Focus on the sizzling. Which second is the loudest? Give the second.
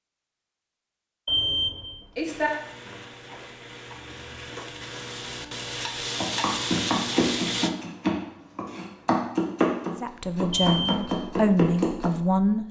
7 s.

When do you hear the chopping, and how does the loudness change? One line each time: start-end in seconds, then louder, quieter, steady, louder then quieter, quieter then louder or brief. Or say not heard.
6.2-12.1 steady.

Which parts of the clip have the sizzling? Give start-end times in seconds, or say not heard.
2.2-7.7.